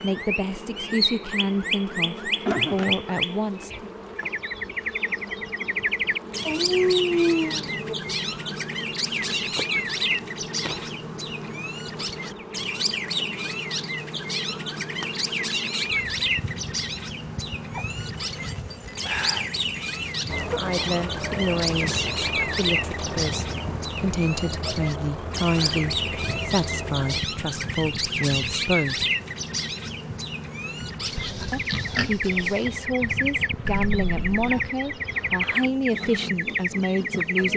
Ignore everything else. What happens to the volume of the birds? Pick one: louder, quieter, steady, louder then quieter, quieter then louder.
steady.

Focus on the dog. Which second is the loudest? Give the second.
7 s.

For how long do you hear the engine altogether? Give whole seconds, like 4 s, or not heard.
7 s.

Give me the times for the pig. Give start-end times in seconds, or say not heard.
31.0-32.8.